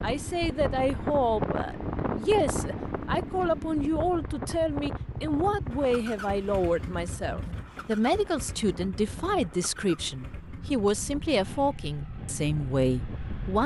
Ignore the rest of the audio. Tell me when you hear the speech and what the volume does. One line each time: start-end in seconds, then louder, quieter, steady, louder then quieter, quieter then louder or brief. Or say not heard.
0.0-13.6 steady.